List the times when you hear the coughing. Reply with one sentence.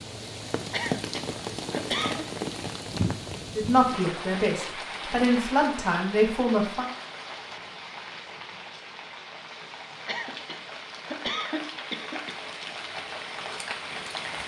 You can hear the coughing from 0.7 to 2.2 s and from 10.1 to 12.3 s.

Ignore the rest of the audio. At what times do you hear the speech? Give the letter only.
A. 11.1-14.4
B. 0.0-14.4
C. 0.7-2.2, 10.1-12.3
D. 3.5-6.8
D.